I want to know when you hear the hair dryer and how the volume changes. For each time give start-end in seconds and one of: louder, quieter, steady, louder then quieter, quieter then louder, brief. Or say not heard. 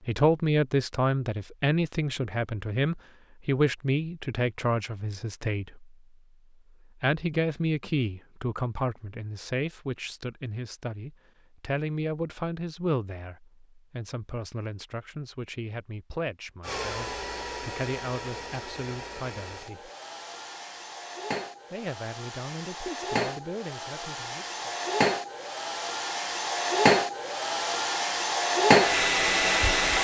16.6-29.9 louder.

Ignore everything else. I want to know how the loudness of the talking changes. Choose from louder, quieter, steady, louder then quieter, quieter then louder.
quieter.